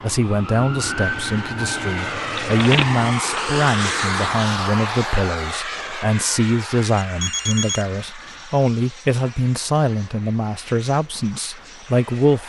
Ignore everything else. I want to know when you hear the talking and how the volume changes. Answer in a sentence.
The talking can be heard from 0.0 to 12.4 s, at a steady volume.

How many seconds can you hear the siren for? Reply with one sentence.
The siren can be heard for 3 seconds in total.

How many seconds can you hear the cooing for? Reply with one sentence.
The cooing can't be heard in this clip.